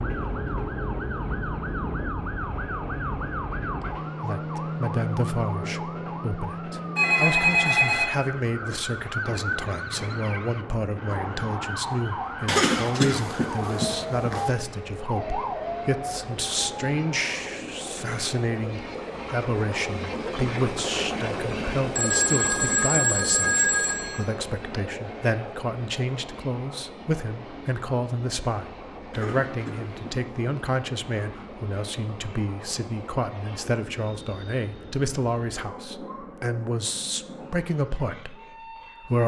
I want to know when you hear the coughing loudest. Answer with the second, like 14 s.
13 s.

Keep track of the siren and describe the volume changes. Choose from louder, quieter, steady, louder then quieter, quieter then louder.
steady.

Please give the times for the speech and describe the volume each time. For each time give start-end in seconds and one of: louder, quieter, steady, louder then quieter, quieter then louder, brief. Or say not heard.
4.2-39.2 steady.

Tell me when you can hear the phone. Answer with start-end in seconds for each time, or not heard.
7.0-8.1, 21.9-24.2.